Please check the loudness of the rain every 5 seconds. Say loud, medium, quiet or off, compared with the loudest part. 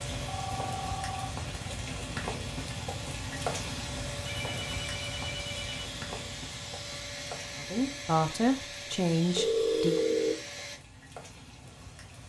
loud, medium, quiet.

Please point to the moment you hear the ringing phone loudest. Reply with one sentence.
The volume of the ringing phone peaks at 10 seconds.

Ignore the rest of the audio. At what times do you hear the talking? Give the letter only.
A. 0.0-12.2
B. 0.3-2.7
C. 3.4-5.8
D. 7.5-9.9
D.